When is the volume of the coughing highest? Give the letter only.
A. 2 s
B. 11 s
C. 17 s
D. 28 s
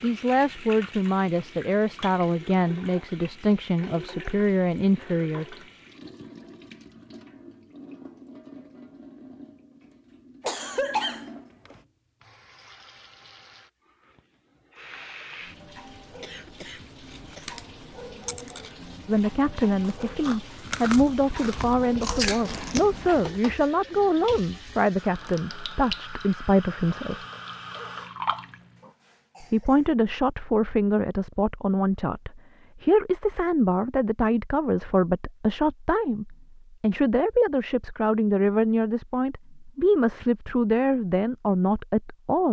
B.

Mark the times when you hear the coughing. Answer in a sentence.
You can hear the coughing from 10.4 to 11.8 s, from 16.2 to 17.5 s and from 28.8 to 29.9 s.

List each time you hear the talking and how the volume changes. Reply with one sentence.
The talking can be heard from 0.0 to 5.5 s, at a steady volume; from 19.1 to 27.1 s, at a steady volume; and from 29.4 to 42.4 s, at a steady volume.